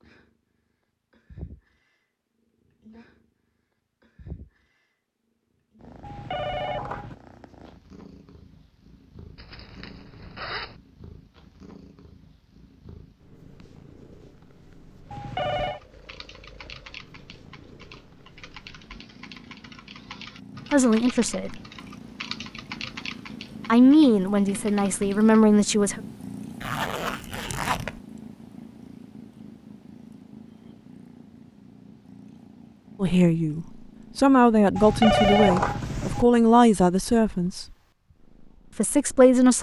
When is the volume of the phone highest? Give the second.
35 s.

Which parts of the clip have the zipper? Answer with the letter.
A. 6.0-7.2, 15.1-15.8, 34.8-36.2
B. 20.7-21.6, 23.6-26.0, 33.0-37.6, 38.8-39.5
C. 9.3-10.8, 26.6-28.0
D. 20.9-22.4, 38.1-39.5
C.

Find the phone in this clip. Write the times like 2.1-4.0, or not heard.
6.0-7.2, 15.1-15.8, 34.8-36.2.